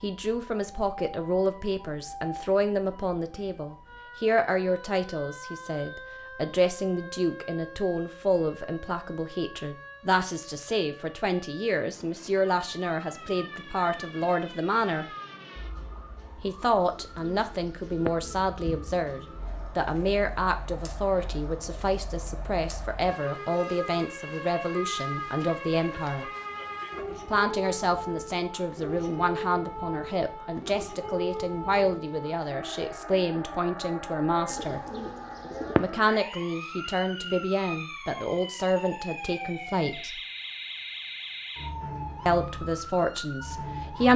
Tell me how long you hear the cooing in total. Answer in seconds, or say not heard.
3 s.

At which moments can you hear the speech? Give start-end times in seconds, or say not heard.
0.0-15.1, 16.4-26.3, 27.2-34.8, 35.8-40.2, 42.2-44.1.